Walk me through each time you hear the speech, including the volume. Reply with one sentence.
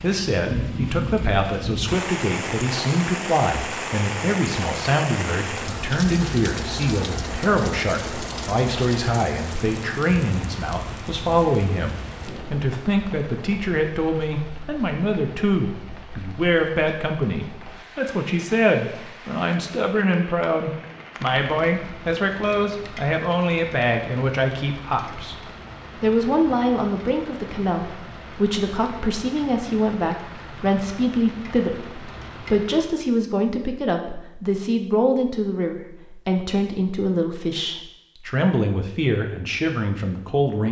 You can hear the speech from 0.0 to 25.4 s, at a steady volume; and from 26.0 to 40.6 s, at a steady volume.